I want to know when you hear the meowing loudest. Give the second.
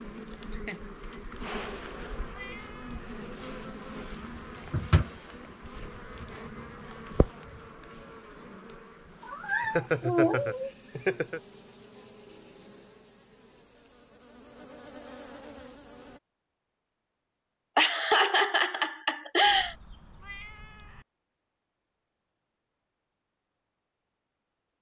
10 s.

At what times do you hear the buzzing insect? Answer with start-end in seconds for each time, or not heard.
0.0-16.2.